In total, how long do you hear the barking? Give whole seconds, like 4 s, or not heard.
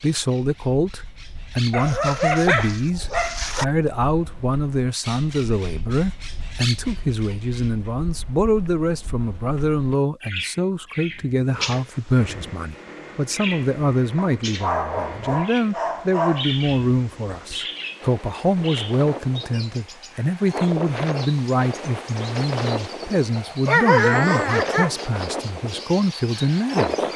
6 s.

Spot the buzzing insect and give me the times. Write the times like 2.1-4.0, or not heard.
not heard.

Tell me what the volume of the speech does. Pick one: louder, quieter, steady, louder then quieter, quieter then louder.
steady.